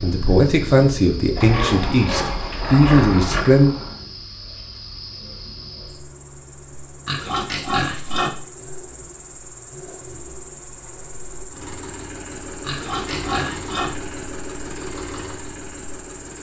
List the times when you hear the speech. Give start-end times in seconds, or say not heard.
0.0-3.8.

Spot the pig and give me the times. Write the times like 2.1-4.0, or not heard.
1.4-3.5, 7.0-8.3, 12.7-13.9.